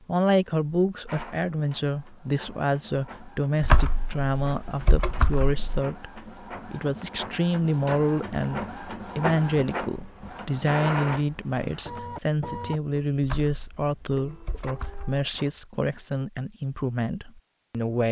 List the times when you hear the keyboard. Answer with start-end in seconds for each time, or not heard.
3.6-5.8, 13.2-15.2.